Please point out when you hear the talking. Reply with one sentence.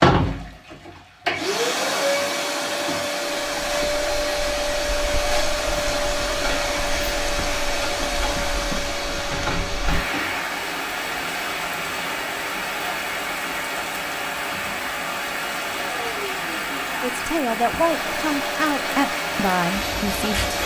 You can hear the talking from 17.0 to 20.6 s.